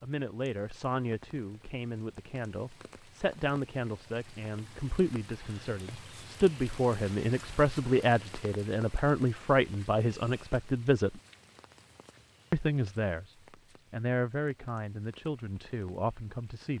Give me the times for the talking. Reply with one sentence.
The talking can be heard from 0.0 to 11.2 s, from 12.5 to 13.3 s and from 13.9 to 16.7 s.